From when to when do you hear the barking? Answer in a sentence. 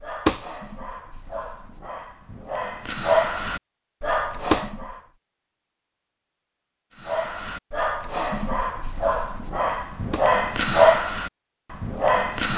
The barking can be heard from 0.0 to 5.0 s and from 7.0 to 12.5 s.